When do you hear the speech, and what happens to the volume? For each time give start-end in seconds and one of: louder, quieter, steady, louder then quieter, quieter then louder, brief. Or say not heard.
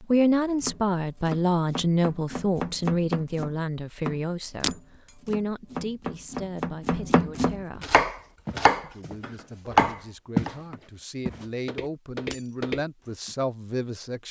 0.0-8.0 quieter
8.8-14.2 louder.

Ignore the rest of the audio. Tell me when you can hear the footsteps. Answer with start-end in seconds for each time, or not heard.
7.7-10.6, 11.2-13.3.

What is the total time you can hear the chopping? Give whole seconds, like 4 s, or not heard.
10 s.